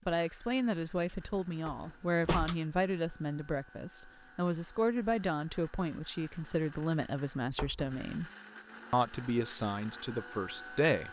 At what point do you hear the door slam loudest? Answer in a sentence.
The volume of the door slam peaks at 2 seconds.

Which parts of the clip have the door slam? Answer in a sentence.
The door slam can be heard from 1.6 to 2.5 s and from 7.5 to 8.2 s.